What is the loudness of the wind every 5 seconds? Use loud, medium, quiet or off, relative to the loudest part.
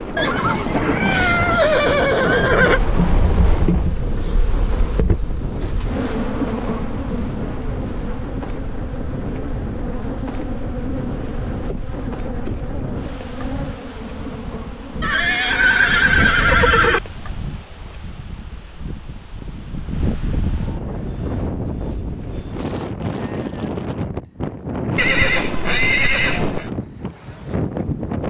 loud, medium, medium, medium, loud, loud.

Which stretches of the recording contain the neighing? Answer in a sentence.
The neighing can be heard from 0.1 to 2.8 s, from 15.0 to 17.0 s and from 24.9 to 26.7 s.